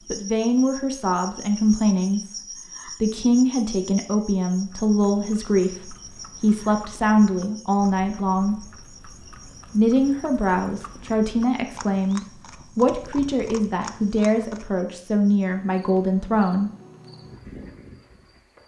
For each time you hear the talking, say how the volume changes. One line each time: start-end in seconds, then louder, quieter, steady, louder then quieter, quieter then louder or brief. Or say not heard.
0.1-8.6 steady
9.7-16.7 steady.